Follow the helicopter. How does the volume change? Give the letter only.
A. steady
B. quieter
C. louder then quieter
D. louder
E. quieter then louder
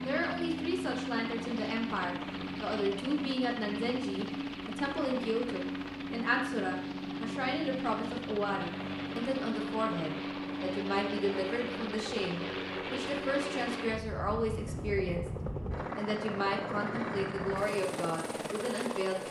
A.